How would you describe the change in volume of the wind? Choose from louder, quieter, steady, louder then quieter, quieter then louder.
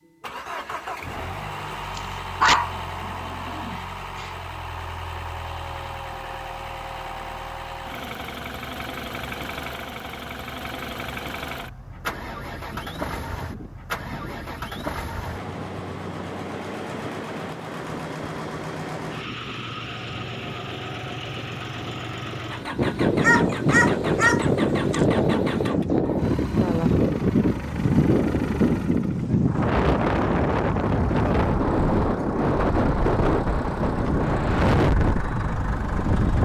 louder.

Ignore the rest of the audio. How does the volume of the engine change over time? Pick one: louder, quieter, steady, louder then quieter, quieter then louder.
steady.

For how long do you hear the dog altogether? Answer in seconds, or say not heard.
4 s.